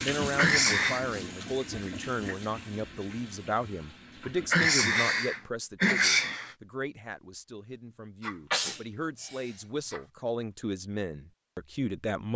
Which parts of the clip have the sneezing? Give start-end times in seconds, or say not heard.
0.3-1.1, 4.5-6.5, 8.2-10.0.